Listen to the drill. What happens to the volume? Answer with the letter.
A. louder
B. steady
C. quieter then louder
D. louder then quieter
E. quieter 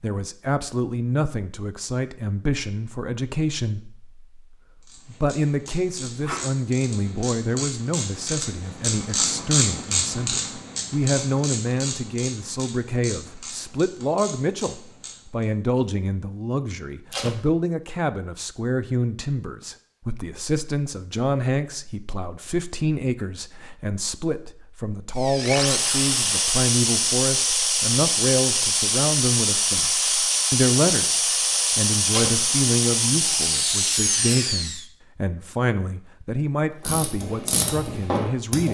B.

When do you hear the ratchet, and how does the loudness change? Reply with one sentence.
The ratchet can be heard from 4.8 to 15.4 s, getting louder then quieter; and briefly from 36.8 to 38.7 s.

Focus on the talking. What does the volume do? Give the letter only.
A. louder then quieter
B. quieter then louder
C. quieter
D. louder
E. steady
E.